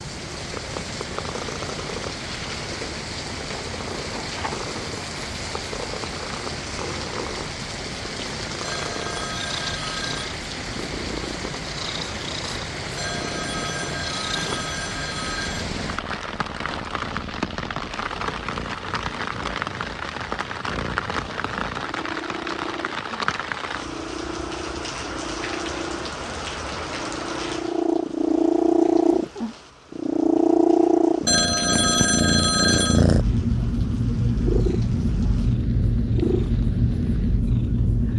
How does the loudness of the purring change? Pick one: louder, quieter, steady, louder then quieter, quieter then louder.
louder.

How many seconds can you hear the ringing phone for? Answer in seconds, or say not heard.
6 s.